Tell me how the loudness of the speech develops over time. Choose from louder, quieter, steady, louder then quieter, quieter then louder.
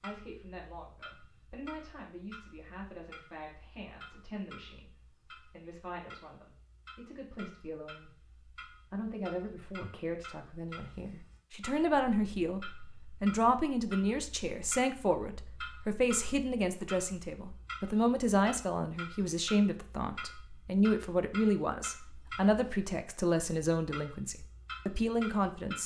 louder.